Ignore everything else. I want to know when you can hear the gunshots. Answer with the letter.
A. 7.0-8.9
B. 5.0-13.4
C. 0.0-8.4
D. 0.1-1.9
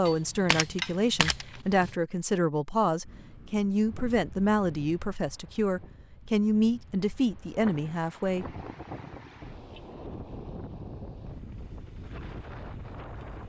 D.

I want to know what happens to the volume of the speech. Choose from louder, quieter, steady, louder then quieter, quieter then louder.
steady.